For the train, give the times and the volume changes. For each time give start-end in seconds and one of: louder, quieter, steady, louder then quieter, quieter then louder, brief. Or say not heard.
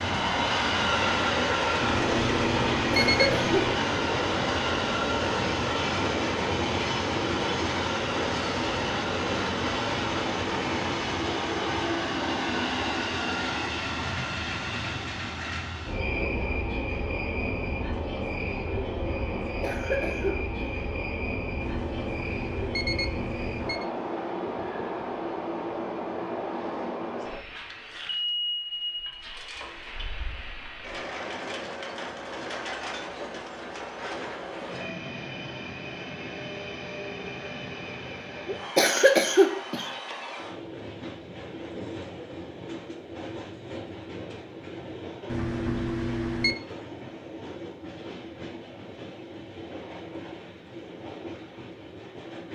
0.0-52.5 quieter.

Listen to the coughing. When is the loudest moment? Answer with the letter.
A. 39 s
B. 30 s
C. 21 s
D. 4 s
A.